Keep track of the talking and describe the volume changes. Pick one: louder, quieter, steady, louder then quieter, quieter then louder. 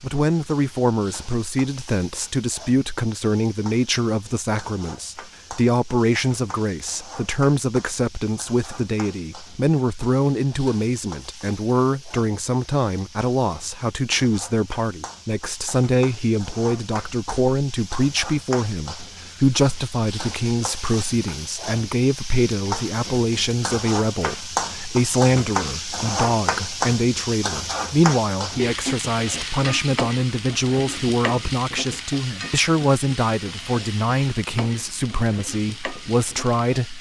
steady.